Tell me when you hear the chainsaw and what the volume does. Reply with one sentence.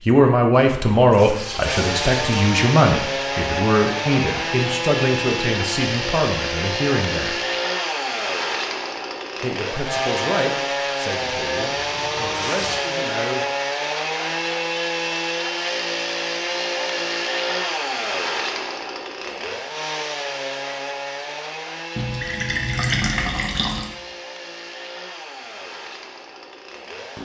You can hear the chainsaw from 1.6 to 27.2 s, getting quieter.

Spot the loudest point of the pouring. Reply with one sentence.
The volume of the pouring peaks at 23 seconds.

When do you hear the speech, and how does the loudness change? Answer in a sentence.
The speech can be heard from 0.1 to 7.4 s, getting quieter; and from 9.4 to 13.4 s, getting quieter then louder.